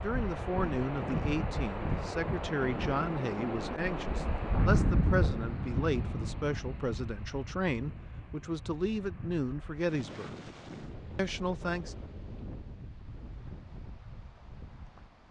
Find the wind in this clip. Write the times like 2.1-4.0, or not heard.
0.0-15.2.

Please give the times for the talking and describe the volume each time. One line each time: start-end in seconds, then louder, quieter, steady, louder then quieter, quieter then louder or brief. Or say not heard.
0.0-10.4 steady
11.2-11.9 brief.